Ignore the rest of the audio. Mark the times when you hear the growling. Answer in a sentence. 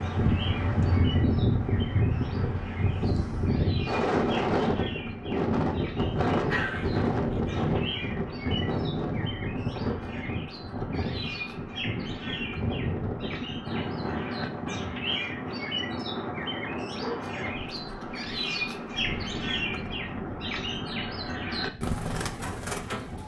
You can hear the growling from 6.4 to 7.7 s.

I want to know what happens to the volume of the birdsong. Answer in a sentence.
The volume of the birdsong goes up.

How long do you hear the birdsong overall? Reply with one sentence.
The birdsong can be heard for 23 seconds in total.